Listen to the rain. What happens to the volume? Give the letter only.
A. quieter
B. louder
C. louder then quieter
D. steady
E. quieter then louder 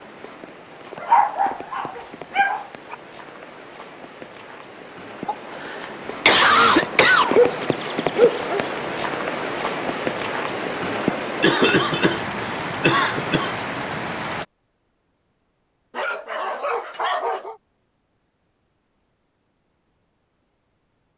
B.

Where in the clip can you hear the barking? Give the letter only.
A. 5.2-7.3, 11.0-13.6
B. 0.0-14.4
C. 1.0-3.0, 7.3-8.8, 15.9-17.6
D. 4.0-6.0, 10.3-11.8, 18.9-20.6
C.